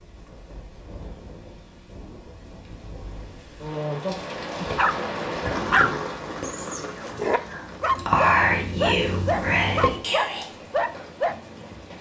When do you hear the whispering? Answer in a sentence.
You can hear the whispering from 4.5 to 10.5 s.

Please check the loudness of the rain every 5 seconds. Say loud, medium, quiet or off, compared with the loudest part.
loud, loud, medium.